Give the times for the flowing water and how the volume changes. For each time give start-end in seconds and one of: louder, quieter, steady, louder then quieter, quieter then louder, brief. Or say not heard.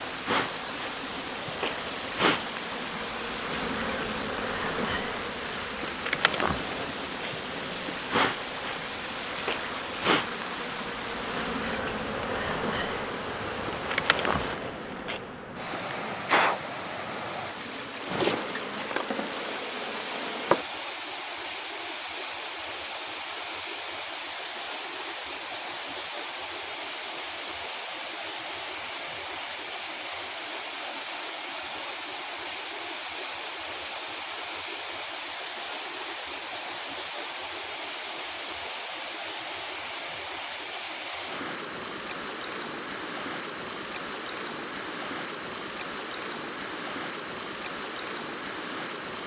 0.0-49.2 steady.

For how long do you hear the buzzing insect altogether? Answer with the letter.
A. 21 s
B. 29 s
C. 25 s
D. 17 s
A.